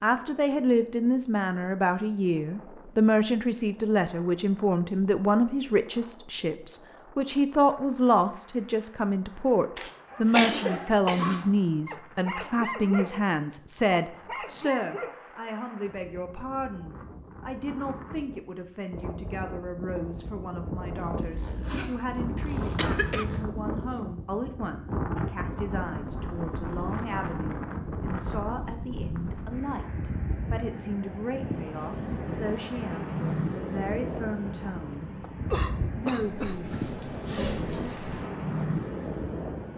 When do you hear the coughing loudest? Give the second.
11 s.